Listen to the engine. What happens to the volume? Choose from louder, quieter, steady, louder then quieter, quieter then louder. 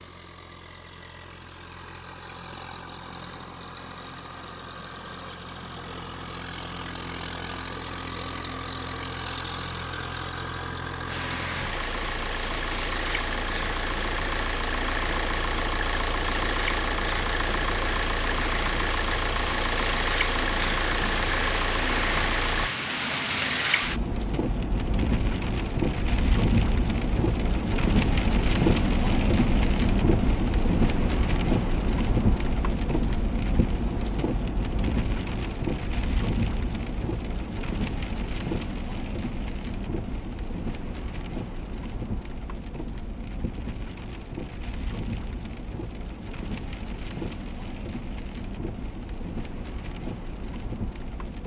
louder.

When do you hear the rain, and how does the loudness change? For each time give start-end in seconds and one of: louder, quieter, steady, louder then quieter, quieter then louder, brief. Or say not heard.
11.1-51.4 louder then quieter.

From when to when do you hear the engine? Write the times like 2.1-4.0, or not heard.
0.0-22.7.